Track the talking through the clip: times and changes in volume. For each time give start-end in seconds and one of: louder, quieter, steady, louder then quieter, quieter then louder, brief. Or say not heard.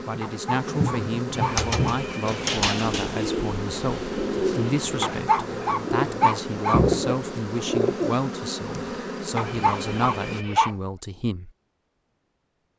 0.1-11.5 steady.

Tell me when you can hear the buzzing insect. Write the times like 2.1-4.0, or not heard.
0.0-10.4.